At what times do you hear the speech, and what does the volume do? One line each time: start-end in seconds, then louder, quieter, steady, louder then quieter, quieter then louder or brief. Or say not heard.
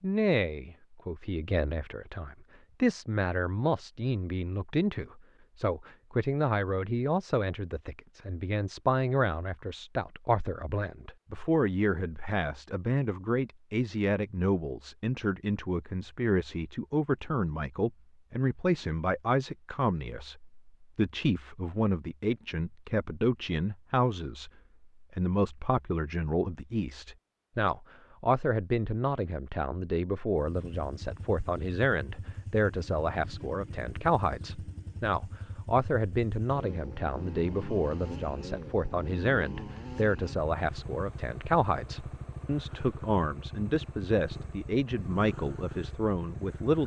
0.0-46.8 steady.